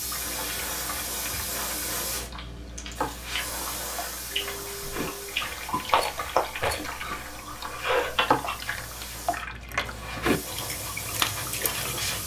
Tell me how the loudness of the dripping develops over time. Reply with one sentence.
The volume of the dripping goes up.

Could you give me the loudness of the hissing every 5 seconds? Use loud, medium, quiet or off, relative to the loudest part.
loud, medium, loud.